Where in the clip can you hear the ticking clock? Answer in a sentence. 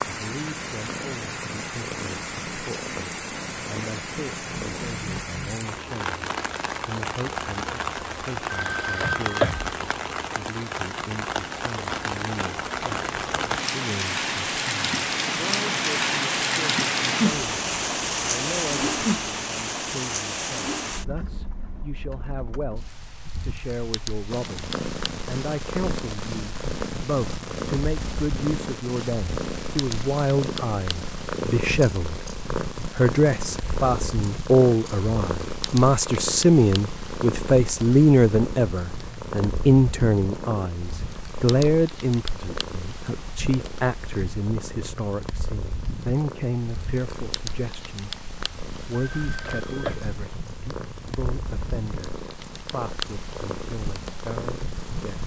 You can't hear the ticking clock here.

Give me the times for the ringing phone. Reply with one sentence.
You can hear the ringing phone from 8.5 to 9.8 s and from 49.0 to 50.1 s.